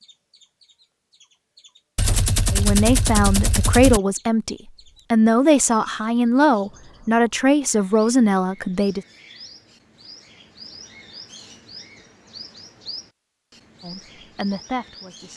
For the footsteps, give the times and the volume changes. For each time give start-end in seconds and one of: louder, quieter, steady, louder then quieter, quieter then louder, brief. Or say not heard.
not heard.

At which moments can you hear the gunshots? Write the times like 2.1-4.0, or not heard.
1.9-4.0.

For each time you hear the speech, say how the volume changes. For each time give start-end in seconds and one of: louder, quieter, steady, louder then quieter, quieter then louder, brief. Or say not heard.
2.5-9.0 steady
13.8-15.3 brief.